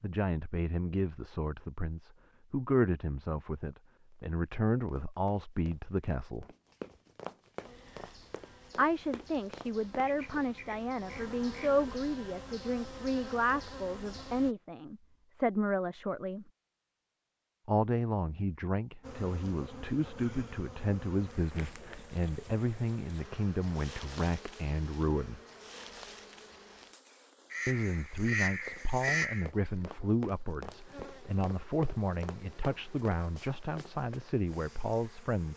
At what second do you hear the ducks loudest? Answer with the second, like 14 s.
29 s.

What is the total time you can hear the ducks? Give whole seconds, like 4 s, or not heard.
4 s.